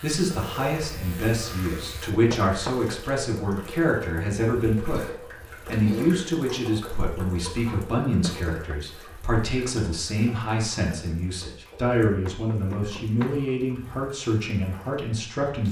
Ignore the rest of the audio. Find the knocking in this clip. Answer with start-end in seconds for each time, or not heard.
2.3-2.9, 8.2-8.8, 12.2-13.4.